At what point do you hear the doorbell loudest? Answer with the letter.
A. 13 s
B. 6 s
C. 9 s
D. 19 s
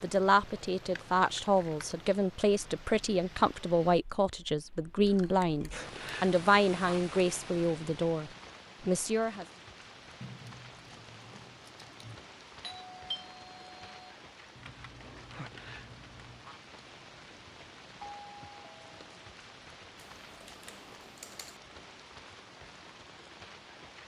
A.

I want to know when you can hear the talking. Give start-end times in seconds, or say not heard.
0.0-9.4.